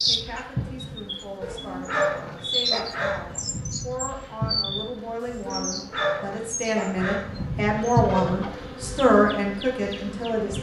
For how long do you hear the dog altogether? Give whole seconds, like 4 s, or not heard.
5 s.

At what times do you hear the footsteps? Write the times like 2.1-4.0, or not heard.
not heard.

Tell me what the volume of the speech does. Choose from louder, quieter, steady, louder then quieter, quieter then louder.
louder.